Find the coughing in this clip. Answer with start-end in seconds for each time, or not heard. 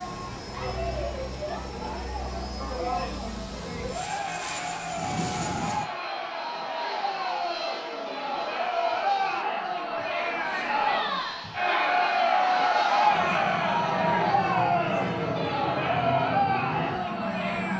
not heard.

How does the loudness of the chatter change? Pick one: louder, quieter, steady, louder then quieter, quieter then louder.
louder.